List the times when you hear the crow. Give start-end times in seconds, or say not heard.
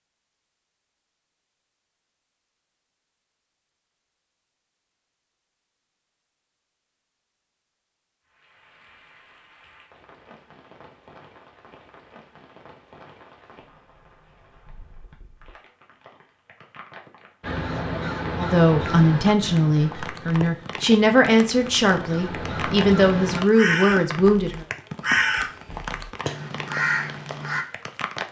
17.4-27.6.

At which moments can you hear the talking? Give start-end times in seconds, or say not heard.
18.4-24.6.